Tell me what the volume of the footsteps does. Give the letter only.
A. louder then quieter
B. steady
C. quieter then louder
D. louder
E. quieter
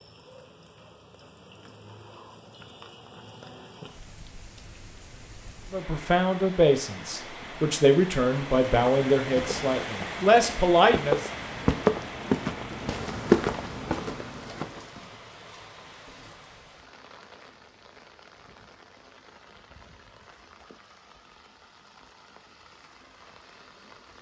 A.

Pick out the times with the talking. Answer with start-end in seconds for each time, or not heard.
5.7-11.3.